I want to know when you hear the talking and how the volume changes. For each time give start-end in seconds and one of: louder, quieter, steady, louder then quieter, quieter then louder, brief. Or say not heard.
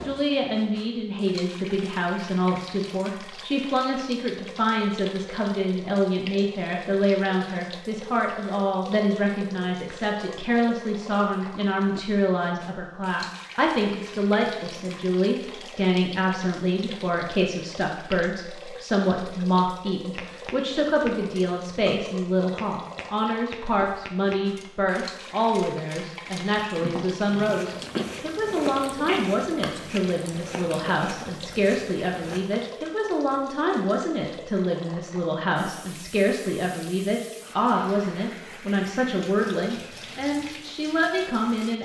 0.0-41.7 steady.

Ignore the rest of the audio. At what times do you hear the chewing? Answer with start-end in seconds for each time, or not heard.
27.4-32.7.